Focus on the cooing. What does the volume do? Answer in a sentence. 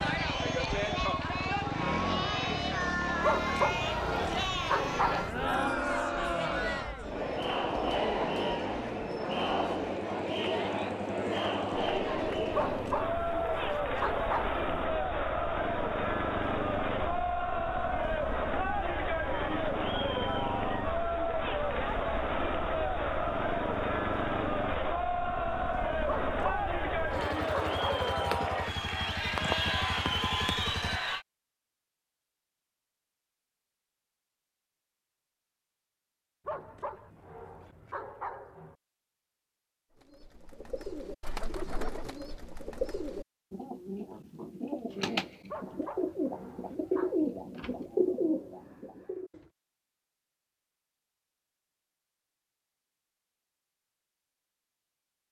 The loudness of the cooing goes up.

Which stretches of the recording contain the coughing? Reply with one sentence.
The coughing can't be heard in this clip.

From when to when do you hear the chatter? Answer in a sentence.
You can hear the chatter from 0.0 to 31.2 s.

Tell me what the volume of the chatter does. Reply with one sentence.
The volume of the chatter stays about the same.